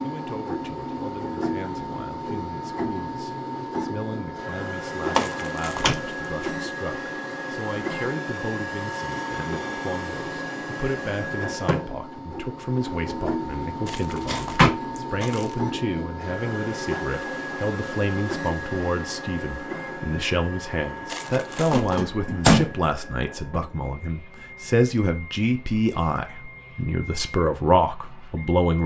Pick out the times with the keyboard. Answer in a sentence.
You can't hear the keyboard here.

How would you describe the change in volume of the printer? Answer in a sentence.
The loudness of the printer goes down.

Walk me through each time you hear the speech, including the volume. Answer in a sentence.
The speech can be heard from 0.0 to 28.8 s, getting louder.